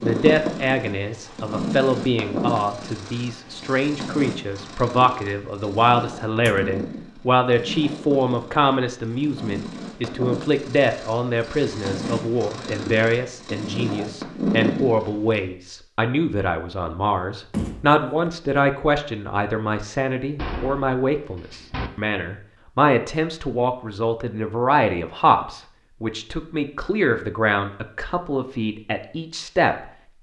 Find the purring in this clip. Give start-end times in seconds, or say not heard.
0.0-15.4.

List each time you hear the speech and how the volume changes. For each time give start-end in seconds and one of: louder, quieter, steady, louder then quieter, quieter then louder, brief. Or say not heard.
0.0-29.8 steady.